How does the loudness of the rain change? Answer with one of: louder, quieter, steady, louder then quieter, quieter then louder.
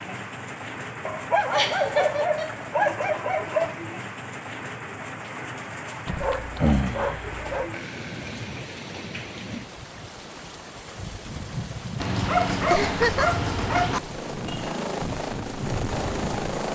steady.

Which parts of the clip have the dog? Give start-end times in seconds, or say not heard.
1.1-3.8, 6.0-7.7, 12.0-14.0.